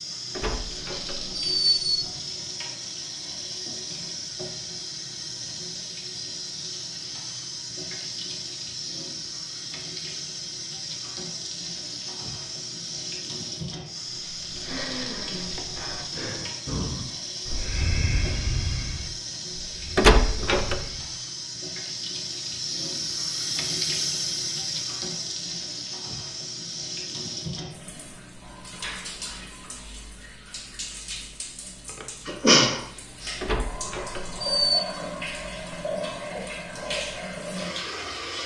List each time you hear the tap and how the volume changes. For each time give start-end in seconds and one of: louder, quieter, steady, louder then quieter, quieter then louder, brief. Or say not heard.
0.0-38.4 steady.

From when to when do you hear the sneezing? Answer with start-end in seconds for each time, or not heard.
32.0-33.4.